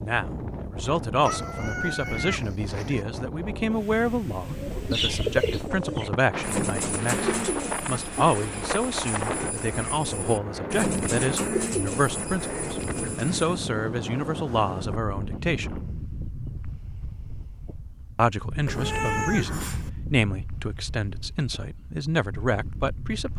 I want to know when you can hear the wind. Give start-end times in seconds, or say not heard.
0.0-23.3.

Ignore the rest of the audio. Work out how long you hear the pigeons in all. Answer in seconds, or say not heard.
9 s.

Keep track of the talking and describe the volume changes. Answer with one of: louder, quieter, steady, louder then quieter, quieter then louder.
steady.